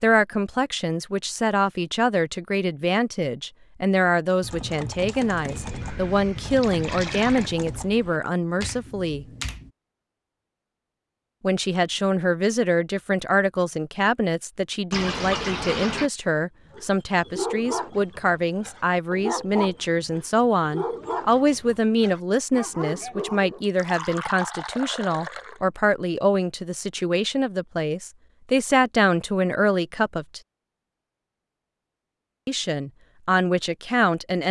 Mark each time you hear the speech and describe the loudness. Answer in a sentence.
The speech can be heard from 0.0 to 9.2 s, at a steady volume; from 11.4 to 30.4 s, at a steady volume; and briefly from 32.5 to 34.4 s.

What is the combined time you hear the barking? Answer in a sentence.
You can hear the barking for 7 seconds altogether.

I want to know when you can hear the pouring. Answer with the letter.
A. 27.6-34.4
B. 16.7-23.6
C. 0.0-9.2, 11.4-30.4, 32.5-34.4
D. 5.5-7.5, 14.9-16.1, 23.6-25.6
D.